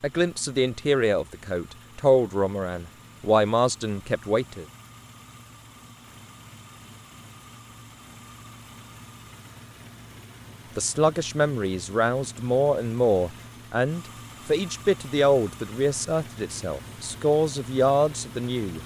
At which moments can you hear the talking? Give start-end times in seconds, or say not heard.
0.0-4.7, 10.8-18.8.